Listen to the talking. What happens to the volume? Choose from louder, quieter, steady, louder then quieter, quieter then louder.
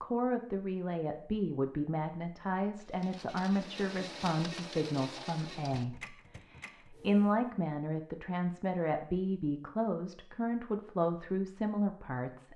steady.